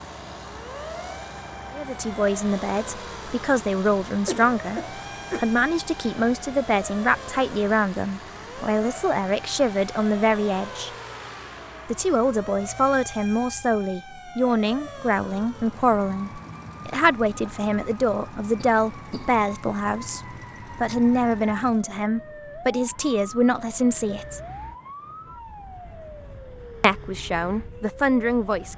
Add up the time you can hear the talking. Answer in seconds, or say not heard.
24 s.